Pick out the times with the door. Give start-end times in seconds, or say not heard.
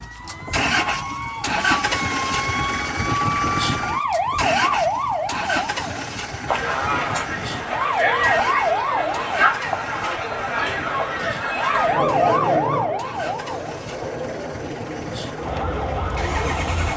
not heard.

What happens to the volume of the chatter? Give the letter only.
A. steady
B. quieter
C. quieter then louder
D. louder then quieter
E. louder
B.